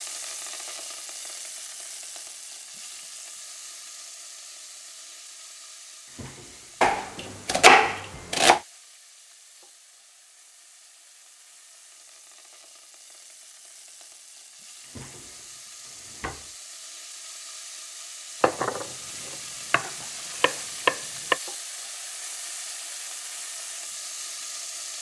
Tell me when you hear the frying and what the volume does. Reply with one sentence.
The frying can be heard from 0.0 to 24.9 s, getting quieter then louder.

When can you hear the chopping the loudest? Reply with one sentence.
The volume of the chopping peaks at 8 seconds.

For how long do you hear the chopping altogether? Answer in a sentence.
The chopping can be heard for 4 seconds in total.